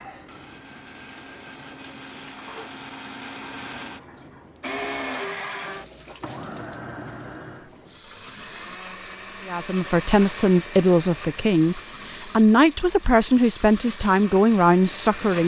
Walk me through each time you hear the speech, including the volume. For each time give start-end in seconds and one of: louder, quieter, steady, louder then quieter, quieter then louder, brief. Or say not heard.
9.4-15.4 steady.